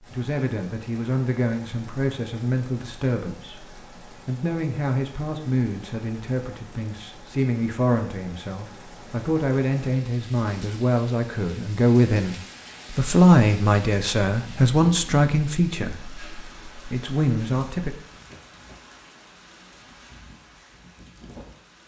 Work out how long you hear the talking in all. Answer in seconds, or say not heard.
18 s.